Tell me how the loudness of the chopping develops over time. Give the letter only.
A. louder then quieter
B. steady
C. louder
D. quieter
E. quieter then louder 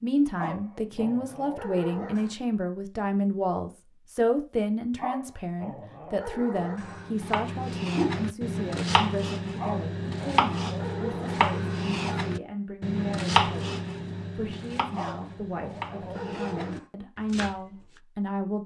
D.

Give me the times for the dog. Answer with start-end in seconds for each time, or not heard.
0.3-2.4, 5.0-7.2, 9.6-11.9, 14.9-16.9.